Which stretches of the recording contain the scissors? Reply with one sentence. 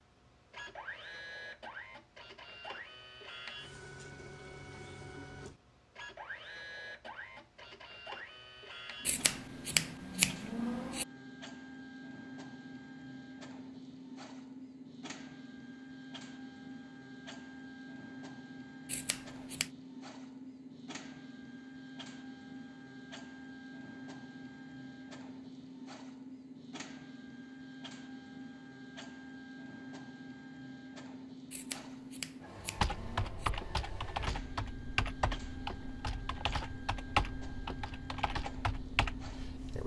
The scissors can be heard from 9.1 to 11.1 s, from 18.9 to 19.7 s and from 31.5 to 33.5 s.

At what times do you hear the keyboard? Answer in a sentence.
You can hear the keyboard from 32.8 to 39.8 s.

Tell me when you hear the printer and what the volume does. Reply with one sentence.
You can hear the printer from 0.0 to 39.8 s, at a steady volume.